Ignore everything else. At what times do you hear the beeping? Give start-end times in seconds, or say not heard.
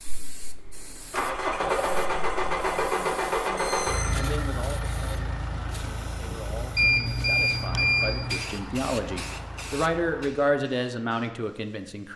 3.5-4.2, 6.8-8.4.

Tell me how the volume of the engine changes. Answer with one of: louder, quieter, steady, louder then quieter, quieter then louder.
quieter.